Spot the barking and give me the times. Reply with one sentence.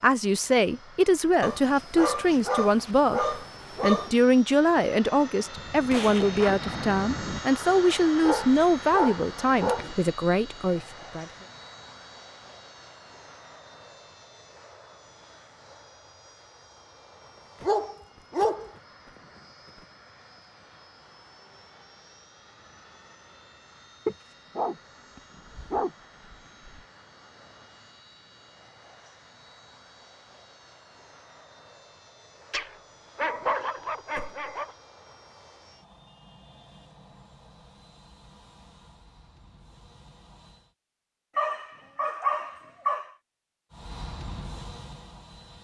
You can hear the barking from 1.4 to 4.1 s, from 8.2 to 10.0 s, from 17.6 to 18.7 s, from 24.1 to 26.8 s, from 32.5 to 34.7 s and from 41.4 to 43.1 s.